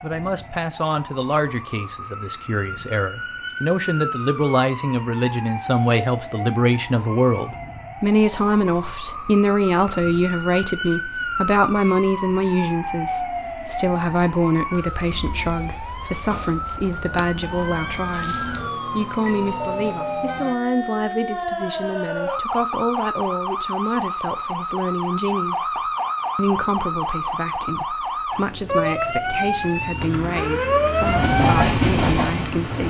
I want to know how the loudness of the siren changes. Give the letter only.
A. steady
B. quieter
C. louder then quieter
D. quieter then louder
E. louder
E.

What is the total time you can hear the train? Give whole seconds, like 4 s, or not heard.
2 s.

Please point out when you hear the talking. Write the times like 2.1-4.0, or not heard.
0.0-32.8.